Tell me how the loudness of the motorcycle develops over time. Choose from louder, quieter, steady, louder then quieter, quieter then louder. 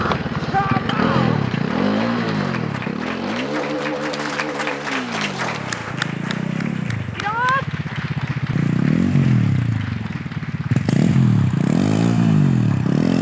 quieter then louder.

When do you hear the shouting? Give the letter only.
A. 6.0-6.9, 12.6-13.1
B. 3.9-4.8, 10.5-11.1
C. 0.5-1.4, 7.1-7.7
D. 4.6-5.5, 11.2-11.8
C.